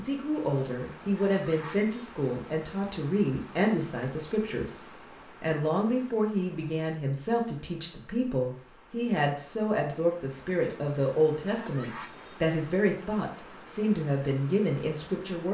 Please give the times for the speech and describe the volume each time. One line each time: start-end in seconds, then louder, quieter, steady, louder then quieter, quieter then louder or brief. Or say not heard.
0.0-15.4 steady.